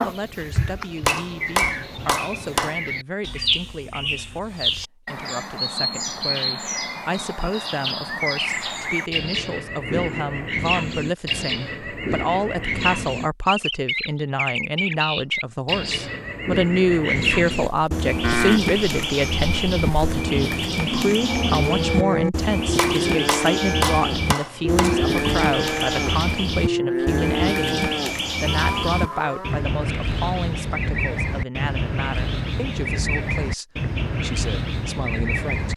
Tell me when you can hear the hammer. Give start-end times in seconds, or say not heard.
1.1-2.8, 22.8-25.1.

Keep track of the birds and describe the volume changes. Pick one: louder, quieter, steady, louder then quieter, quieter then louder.
steady.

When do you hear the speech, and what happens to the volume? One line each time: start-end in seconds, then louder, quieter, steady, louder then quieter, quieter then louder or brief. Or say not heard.
0.0-35.7 louder then quieter.